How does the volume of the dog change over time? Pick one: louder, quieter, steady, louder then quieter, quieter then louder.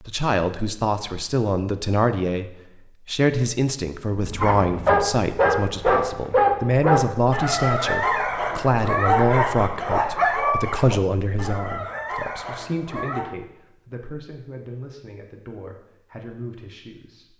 quieter.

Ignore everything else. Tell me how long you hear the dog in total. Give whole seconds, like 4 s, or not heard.
9 s.